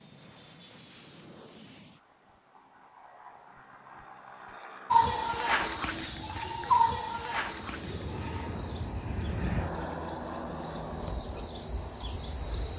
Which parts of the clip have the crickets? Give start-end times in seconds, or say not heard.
4.9-12.7.